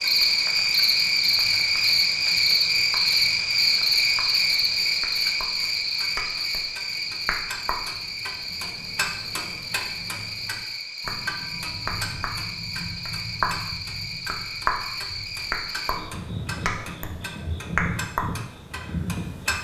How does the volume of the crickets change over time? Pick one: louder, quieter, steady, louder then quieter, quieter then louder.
quieter.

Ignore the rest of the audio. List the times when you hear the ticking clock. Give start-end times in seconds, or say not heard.
0.0-19.5.